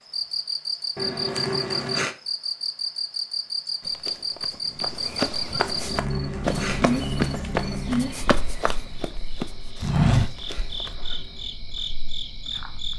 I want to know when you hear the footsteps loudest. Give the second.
10 s.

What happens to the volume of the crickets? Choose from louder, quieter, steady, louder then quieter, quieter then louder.
quieter.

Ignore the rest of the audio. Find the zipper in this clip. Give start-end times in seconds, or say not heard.
0.9-2.1, 5.5-6.9, 9.4-11.4.